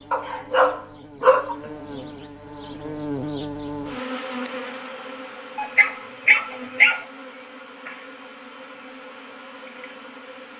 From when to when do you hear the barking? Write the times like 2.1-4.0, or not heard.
0.1-1.6, 5.5-7.0.